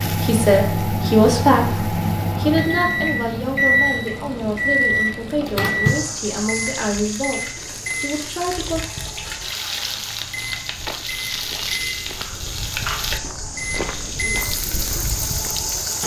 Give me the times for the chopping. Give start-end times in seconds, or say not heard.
not heard.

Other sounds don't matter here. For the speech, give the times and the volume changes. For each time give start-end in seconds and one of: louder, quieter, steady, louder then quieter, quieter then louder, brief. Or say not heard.
0.1-8.8 quieter.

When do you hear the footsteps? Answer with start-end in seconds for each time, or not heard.
10.2-15.7.